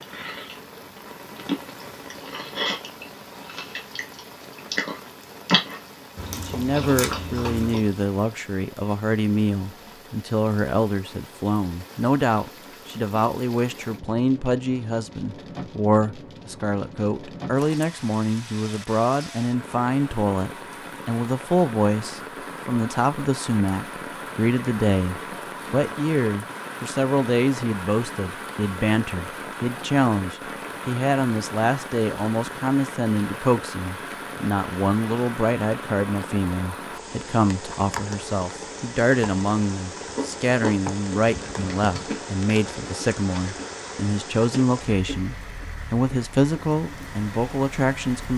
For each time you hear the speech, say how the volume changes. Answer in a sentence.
You can hear the speech from 6.3 to 48.3 s, at a steady volume.